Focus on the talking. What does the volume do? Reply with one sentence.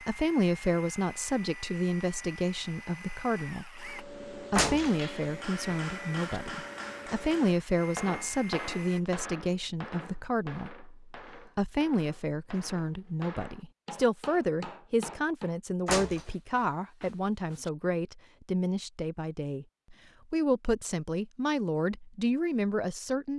The volume of the talking stays about the same.